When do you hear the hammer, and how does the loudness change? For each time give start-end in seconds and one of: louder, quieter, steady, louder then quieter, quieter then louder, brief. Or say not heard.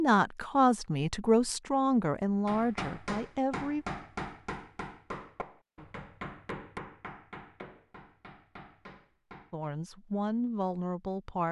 2.5-9.7 quieter.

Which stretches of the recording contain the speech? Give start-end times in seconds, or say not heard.
0.0-3.9, 9.5-11.4.